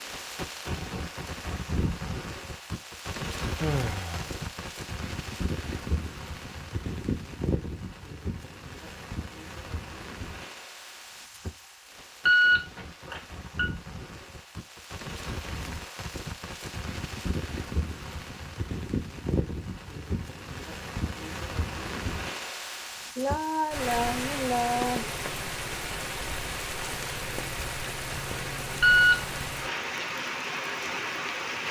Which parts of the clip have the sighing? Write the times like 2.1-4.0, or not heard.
3.5-4.4, 23.1-25.1.